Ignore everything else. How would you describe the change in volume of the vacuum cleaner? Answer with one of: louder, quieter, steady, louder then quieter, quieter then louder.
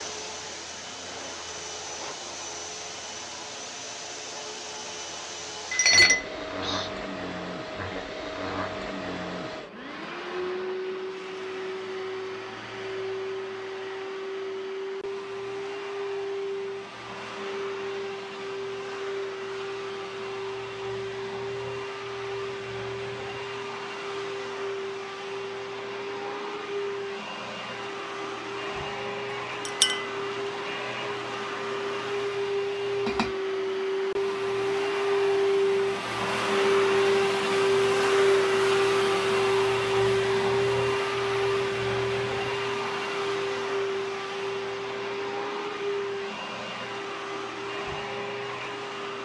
louder.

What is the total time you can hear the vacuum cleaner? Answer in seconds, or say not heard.
49 s.